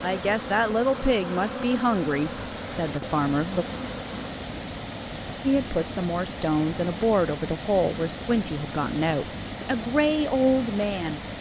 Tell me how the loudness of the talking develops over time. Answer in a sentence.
The loudness of the talking stays about the same.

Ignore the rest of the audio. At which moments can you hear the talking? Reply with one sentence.
You can hear the talking from 0.0 to 3.6 s and from 5.4 to 11.2 s.